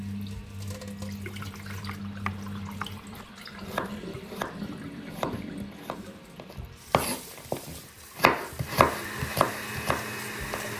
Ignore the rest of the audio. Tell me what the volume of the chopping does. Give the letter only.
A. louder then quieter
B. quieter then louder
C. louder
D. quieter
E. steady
C.